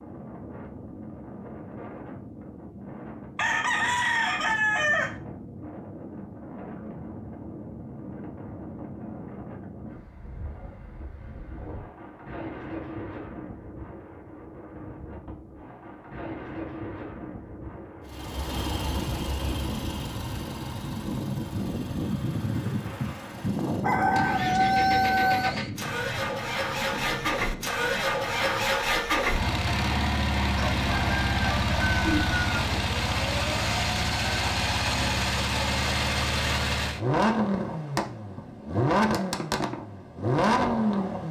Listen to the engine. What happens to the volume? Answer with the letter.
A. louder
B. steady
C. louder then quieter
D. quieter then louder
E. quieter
A.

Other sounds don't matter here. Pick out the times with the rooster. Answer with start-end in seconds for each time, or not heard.
3.4-5.2, 23.8-25.6, 30.6-32.5.